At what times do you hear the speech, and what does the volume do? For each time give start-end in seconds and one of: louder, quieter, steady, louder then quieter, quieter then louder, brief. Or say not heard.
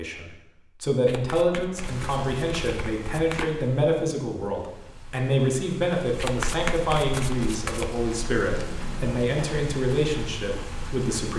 0.0-11.3 steady.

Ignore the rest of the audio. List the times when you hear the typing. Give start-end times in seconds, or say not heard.
not heard.